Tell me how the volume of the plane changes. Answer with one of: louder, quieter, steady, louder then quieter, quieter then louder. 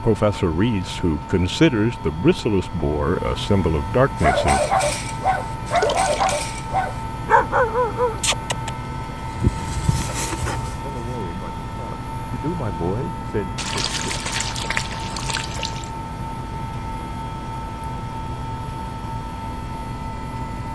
steady.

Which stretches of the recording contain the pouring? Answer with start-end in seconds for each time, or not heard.
5.7-6.5, 13.6-15.9.